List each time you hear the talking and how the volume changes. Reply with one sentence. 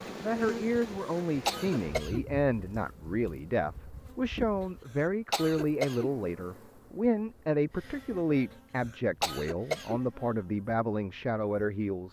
The talking can be heard from 0.2 to 12.0 s, at a steady volume.